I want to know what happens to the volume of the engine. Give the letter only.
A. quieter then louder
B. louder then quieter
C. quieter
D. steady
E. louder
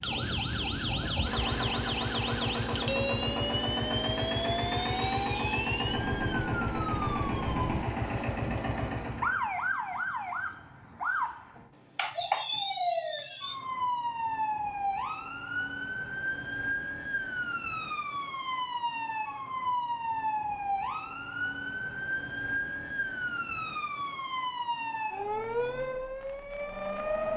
D.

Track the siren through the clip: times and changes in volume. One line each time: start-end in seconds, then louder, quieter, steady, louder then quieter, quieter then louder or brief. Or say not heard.
0.0-27.3 steady.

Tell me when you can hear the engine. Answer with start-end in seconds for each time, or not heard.
0.0-9.4.